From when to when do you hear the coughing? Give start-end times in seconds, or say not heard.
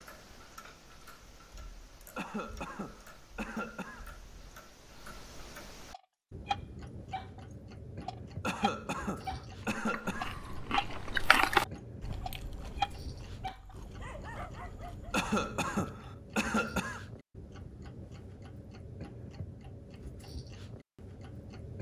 2.1-4.0, 8.4-10.3, 15.1-17.1.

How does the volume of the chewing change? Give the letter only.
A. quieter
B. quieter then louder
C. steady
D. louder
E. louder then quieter
E.